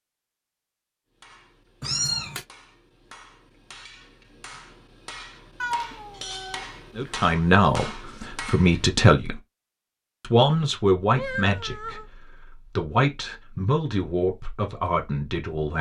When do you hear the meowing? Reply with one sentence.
You can hear the meowing from 1.8 to 2.5 s, from 5.6 to 7.2 s and from 11.1 to 12.1 s.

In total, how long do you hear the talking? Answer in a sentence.
You can hear the talking for 8 seconds altogether.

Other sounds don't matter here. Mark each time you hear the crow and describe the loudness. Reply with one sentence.
The crow can't be heard in this clip.